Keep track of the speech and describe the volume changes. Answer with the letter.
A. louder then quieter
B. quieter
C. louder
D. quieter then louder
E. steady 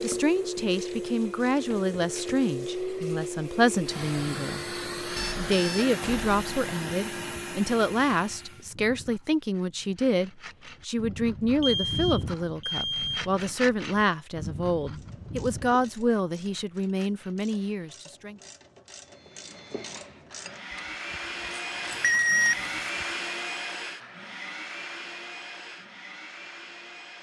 E.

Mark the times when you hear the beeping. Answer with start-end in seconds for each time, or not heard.
5.2-6.7, 11.6-13.3, 21.9-22.8.